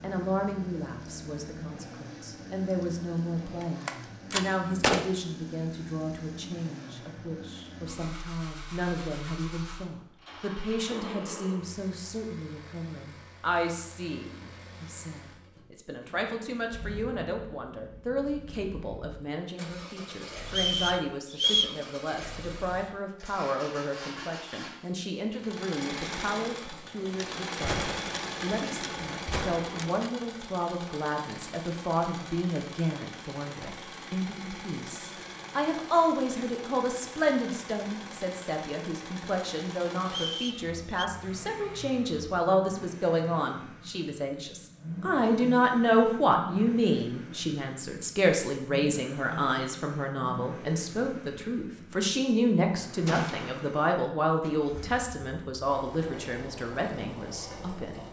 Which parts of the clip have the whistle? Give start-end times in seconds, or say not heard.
20.4-21.8, 40.0-41.0.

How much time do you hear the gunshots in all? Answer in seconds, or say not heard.
5 s.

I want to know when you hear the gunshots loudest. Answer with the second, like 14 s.
5 s.